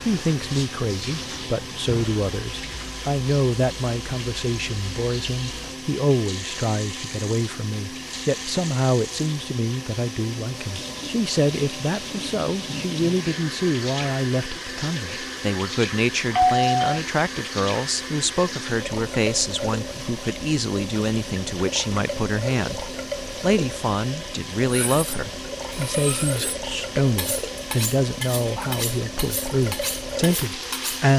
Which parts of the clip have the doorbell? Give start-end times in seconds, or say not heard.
16.3-17.0.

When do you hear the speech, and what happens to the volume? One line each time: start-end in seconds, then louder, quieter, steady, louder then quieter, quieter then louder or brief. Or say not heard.
0.0-31.1 steady.